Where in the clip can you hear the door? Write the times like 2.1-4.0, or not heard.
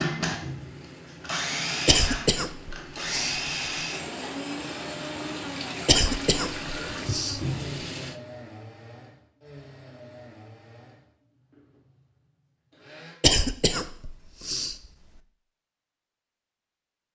not heard.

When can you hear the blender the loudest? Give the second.
2 s.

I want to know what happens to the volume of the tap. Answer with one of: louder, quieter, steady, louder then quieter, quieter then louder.
louder.